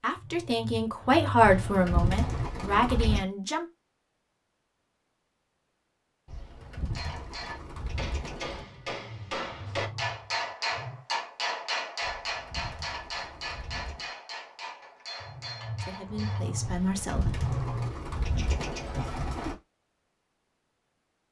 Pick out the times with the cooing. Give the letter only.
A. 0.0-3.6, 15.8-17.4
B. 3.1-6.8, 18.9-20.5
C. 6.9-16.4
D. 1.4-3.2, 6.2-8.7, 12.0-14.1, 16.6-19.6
D.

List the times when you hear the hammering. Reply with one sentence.
The hammering can be heard from 6.9 to 16.4 s.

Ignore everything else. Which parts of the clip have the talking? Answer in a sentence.
The talking can be heard from 0.0 to 3.6 s and from 15.8 to 17.4 s.